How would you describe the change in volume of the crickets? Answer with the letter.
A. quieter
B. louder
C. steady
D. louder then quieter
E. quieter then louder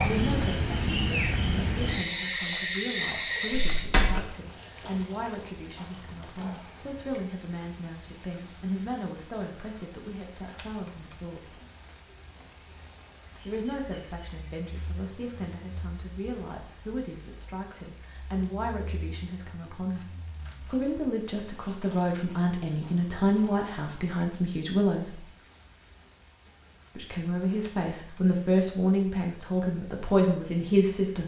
A.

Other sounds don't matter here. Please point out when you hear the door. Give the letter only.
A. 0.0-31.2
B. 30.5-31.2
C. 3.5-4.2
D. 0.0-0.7
C.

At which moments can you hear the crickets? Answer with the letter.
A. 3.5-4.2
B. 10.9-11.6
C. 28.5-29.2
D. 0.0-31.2
D.